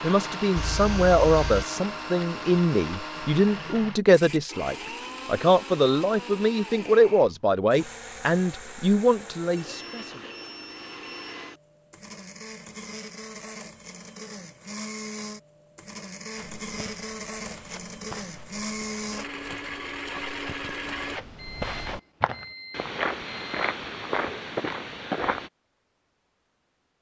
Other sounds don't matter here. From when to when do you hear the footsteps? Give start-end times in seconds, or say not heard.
16.4-25.5.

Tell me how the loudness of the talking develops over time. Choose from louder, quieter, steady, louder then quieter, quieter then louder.
steady.